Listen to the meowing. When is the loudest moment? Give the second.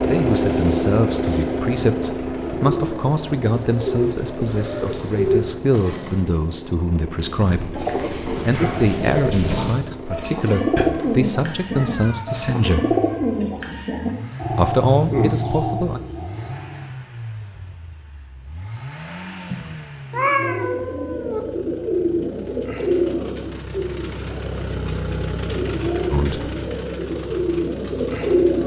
20 s.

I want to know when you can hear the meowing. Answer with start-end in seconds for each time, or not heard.
10.8-12.2, 19.5-21.4.